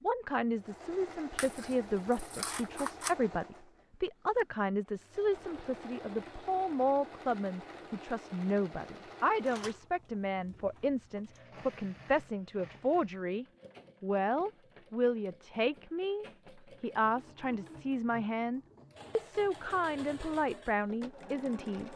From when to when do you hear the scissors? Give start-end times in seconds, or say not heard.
1.4-3.1.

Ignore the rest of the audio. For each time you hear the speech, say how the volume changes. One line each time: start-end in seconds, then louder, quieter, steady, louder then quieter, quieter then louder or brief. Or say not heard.
0.0-21.9 steady.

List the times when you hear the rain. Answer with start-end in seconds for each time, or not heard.
not heard.